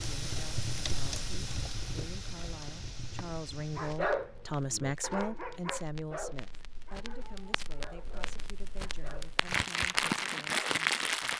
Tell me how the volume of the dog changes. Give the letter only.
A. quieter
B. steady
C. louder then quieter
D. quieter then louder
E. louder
A.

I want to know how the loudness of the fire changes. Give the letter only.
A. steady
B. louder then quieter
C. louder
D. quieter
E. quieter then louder
E.